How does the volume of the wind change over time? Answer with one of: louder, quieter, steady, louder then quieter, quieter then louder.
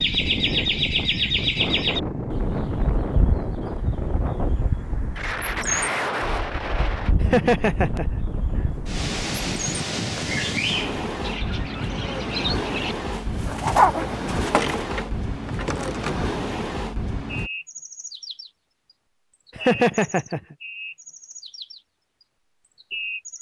steady.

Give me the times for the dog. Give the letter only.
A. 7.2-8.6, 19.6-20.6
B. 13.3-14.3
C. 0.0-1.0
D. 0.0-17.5
B.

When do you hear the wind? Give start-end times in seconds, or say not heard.
0.0-17.5.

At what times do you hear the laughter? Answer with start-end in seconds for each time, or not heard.
7.2-8.6, 19.6-20.6.